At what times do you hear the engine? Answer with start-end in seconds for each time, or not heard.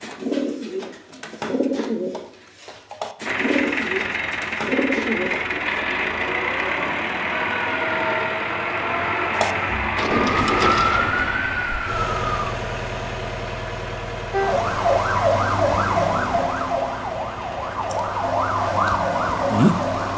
3.2-20.1.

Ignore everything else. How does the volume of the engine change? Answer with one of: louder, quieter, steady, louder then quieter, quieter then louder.
quieter.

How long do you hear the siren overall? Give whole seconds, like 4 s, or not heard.
11 s.